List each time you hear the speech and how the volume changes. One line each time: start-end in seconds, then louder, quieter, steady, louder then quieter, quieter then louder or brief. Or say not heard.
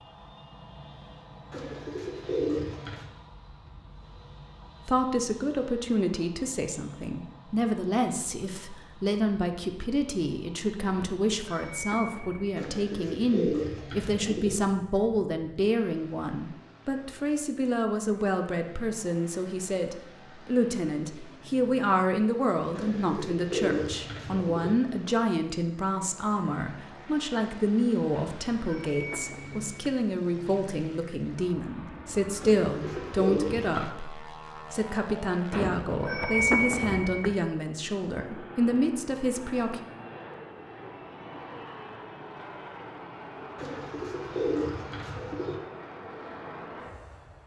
4.8-39.8 steady.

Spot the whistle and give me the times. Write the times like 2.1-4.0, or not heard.
not heard.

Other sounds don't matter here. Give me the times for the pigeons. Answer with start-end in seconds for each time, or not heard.
1.5-3.0, 12.6-14.6, 22.8-24.8, 32.4-33.9, 43.5-45.5.